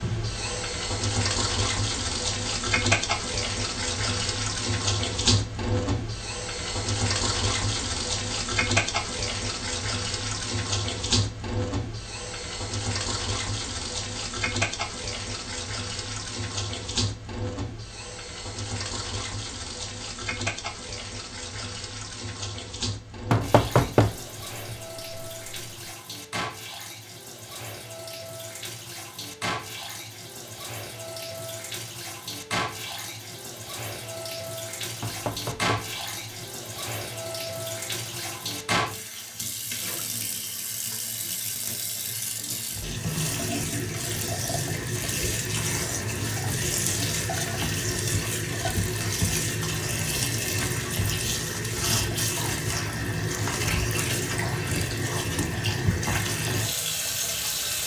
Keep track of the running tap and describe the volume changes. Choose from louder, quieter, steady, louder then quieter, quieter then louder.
quieter then louder.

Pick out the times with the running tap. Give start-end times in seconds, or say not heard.
0.0-57.8.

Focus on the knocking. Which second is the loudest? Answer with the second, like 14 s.
24 s.